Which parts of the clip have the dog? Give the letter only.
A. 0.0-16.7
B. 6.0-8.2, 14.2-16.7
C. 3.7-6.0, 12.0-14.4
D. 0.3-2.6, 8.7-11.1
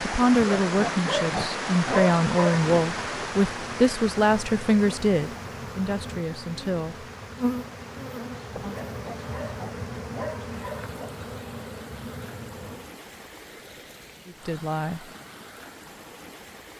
D.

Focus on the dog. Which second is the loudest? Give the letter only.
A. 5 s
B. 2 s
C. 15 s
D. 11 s
B.